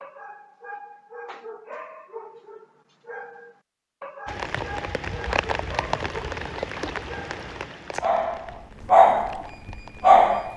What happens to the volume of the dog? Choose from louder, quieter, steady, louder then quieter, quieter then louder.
louder.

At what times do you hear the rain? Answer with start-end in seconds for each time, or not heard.
4.2-10.5.